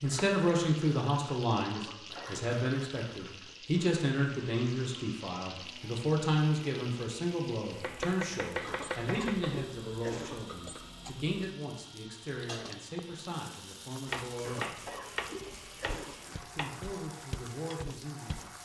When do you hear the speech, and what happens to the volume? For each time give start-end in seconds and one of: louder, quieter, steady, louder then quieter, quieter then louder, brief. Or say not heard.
0.0-14.8 quieter
16.5-18.6 brief.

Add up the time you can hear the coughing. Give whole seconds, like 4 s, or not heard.
4 s.